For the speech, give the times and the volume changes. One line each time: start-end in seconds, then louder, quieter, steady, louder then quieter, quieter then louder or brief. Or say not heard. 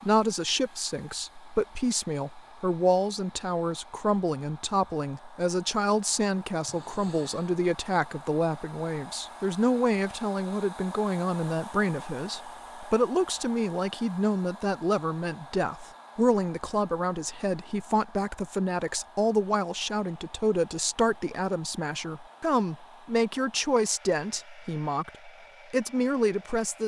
0.0-26.8 steady.